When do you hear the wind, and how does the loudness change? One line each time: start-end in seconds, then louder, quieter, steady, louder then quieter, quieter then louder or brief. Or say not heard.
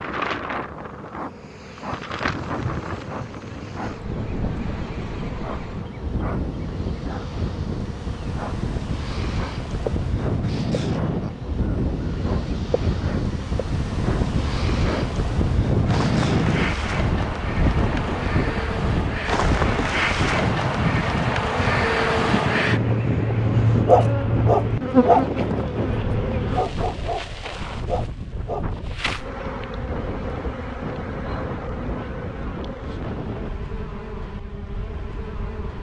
0.0-35.7 louder then quieter.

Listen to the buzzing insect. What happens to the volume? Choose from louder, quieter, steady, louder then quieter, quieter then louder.
louder then quieter.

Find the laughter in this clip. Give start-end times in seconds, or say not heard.
not heard.